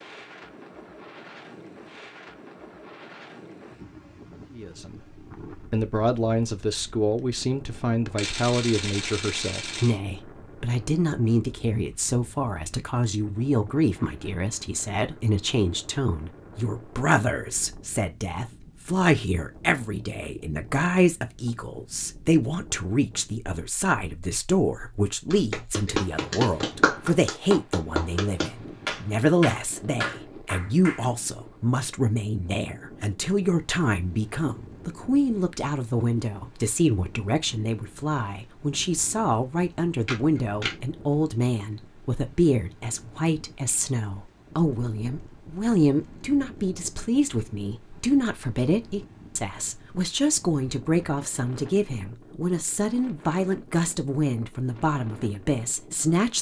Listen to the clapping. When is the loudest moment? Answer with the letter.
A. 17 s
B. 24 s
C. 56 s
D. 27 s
D.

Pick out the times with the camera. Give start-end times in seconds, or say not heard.
8.2-10.0, 40.0-40.8.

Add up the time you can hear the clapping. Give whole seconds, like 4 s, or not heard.
6 s.